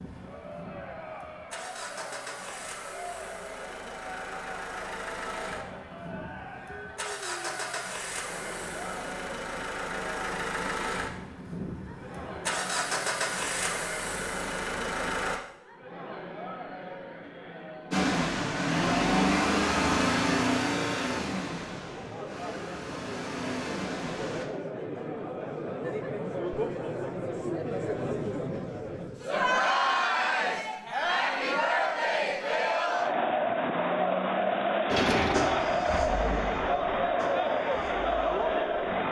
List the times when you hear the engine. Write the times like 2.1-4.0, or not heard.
0.0-15.4, 17.9-24.4, 34.9-38.9.